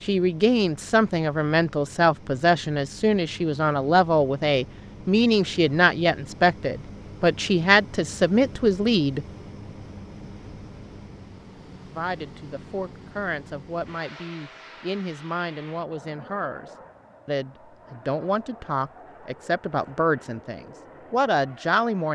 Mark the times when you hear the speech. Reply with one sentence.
You can hear the speech from 0.0 to 9.2 s and from 11.9 to 22.1 s.